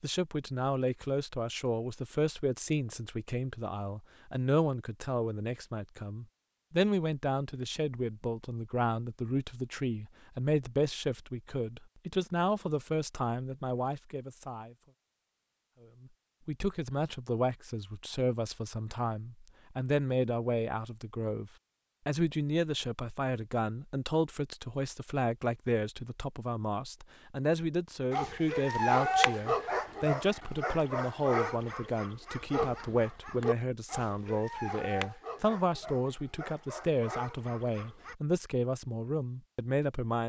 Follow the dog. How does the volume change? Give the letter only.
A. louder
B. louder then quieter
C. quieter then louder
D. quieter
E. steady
D.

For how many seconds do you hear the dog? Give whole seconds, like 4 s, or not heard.
10 s.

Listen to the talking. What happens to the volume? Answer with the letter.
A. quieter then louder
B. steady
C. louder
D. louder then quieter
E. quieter
B.